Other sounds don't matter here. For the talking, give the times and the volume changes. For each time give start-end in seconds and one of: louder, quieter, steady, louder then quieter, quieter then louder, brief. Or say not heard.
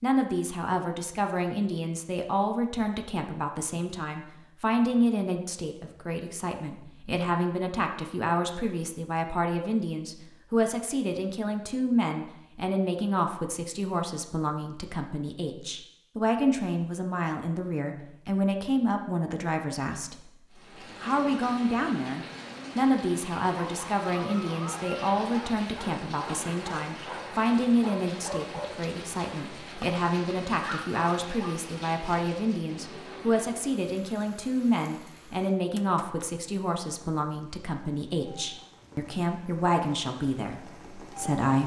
0.0-20.3 steady
21.0-41.6 steady.